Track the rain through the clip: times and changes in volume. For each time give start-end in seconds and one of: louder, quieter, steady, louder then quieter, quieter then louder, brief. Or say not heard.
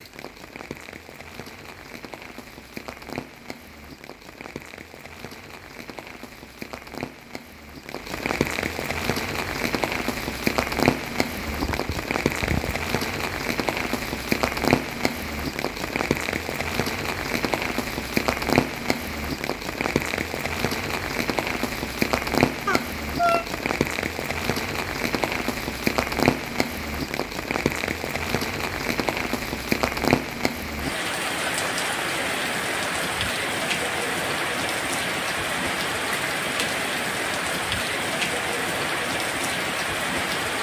0.0-40.5 louder.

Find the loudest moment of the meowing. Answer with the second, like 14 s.
23 s.